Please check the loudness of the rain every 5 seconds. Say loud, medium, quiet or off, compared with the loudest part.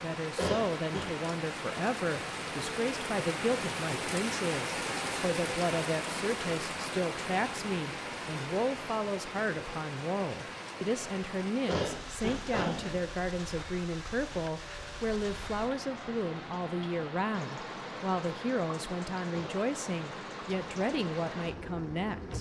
loud, loud, medium, medium, medium.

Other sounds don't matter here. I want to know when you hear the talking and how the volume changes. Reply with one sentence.
The talking can be heard from 0.0 to 22.3 s, at a steady volume.